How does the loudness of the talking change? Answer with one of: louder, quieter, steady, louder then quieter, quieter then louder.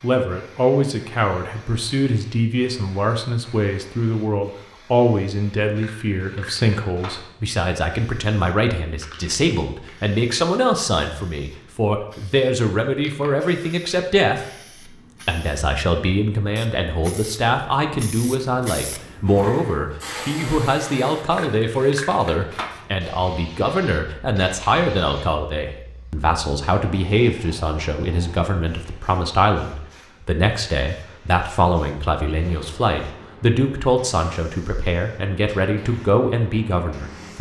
steady.